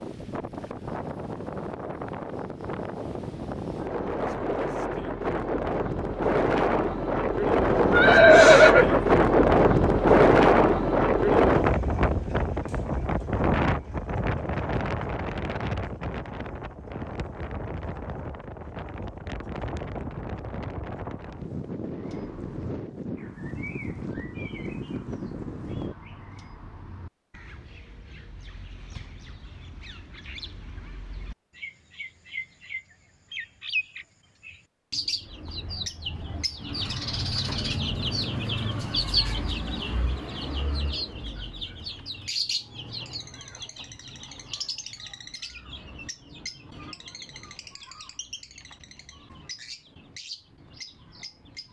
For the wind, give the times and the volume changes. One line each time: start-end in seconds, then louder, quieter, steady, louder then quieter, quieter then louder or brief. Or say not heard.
0.0-25.9 louder then quieter.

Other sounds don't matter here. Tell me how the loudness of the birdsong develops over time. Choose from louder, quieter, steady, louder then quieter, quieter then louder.
louder then quieter.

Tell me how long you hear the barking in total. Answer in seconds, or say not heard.
not heard.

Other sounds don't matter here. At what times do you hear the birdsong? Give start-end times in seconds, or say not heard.
21.9-51.6.